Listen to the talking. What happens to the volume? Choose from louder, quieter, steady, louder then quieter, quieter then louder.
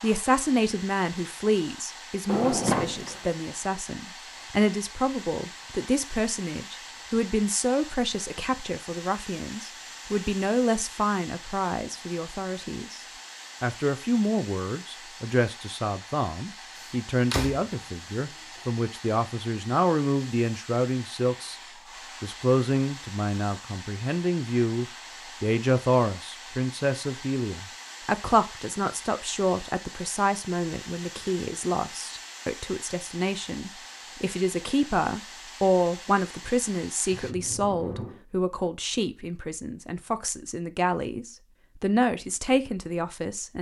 steady.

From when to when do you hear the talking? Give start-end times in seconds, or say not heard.
0.0-13.0, 13.6-21.6, 22.2-43.5.